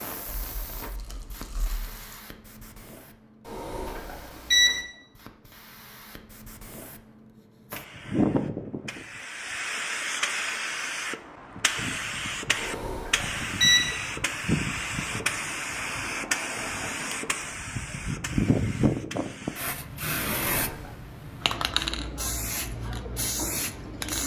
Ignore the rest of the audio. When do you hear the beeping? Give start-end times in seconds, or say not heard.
3.5-4.8, 12.6-13.8, 20.2-21.0.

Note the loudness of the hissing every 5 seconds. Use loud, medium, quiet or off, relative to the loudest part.
quiet, loud, loud, loud, loud.